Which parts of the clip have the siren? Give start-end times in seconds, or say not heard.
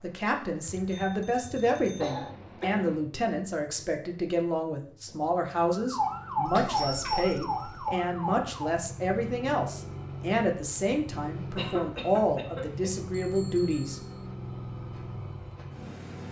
5.7-8.8.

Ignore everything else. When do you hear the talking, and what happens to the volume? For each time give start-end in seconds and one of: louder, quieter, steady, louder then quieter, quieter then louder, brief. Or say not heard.
0.0-14.0 steady.